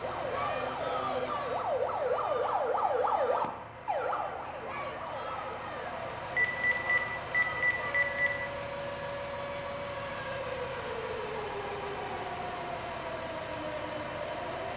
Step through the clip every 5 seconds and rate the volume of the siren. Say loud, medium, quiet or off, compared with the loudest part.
loud, medium, medium.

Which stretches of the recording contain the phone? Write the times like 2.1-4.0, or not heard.
6.3-8.3.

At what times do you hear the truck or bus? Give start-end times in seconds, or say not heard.
0.0-14.7.